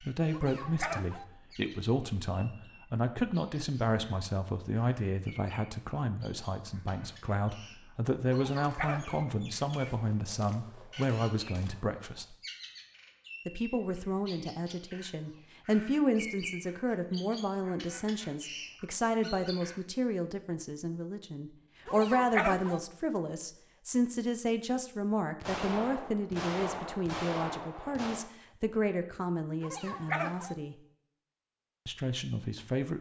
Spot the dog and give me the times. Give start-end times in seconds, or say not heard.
0.3-1.2, 8.3-9.2, 21.9-22.8, 29.6-30.6.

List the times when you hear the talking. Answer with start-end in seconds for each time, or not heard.
0.0-12.3, 13.4-30.8, 31.9-32.9.